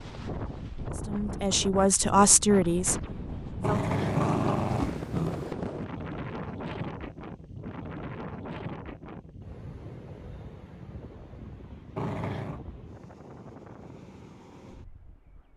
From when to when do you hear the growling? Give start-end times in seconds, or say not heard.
3.6-5.5, 11.9-12.6.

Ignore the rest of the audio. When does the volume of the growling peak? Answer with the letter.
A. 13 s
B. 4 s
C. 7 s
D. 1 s
B.